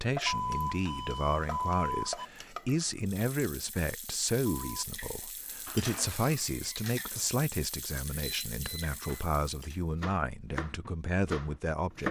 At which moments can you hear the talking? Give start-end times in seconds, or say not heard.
0.0-12.0.